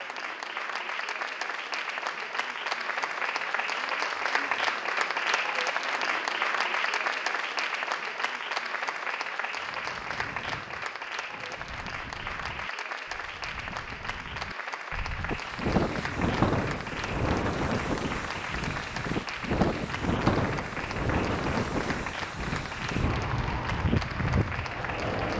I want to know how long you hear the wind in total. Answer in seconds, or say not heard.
16 s.